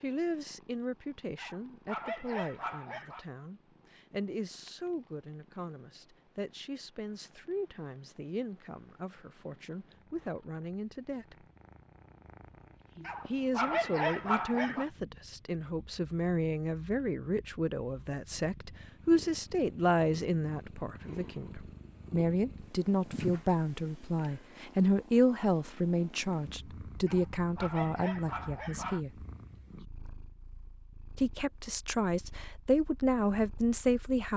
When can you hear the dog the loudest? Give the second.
14 s.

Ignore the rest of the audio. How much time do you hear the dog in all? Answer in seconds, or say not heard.
6 s.